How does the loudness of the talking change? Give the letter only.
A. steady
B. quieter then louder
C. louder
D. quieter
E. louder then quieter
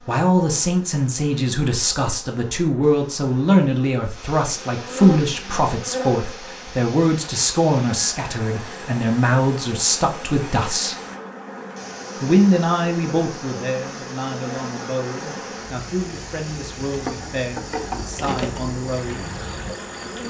D.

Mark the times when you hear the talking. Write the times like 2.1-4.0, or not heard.
0.1-10.9, 12.2-19.4.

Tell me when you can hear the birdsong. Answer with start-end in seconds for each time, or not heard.
not heard.